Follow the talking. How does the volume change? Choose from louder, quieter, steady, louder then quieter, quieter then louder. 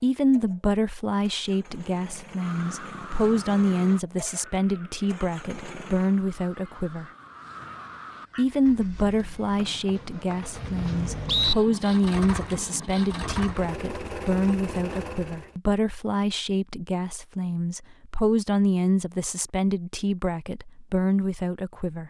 steady.